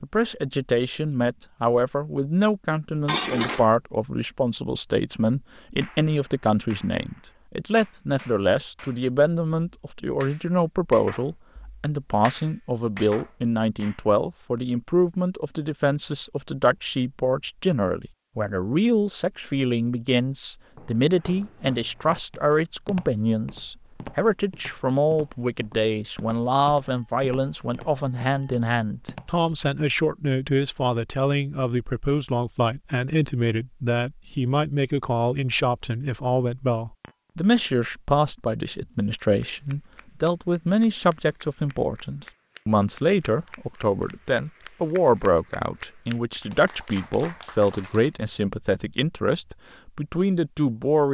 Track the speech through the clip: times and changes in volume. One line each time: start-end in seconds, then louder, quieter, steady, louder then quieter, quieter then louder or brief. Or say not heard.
0.0-51.0 steady.